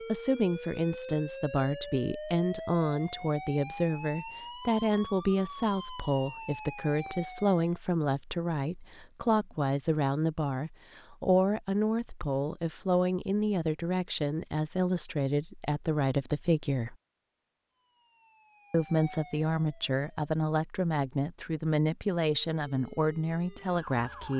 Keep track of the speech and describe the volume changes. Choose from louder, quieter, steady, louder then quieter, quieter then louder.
steady.